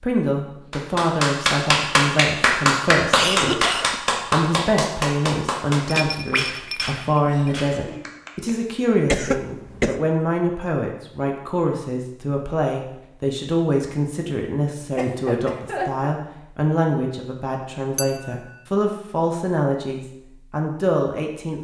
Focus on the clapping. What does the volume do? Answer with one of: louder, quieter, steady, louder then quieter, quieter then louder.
quieter.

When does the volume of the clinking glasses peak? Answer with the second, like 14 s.
6 s.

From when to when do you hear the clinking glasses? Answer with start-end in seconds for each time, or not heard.
5.8-7.6, 17.9-18.6.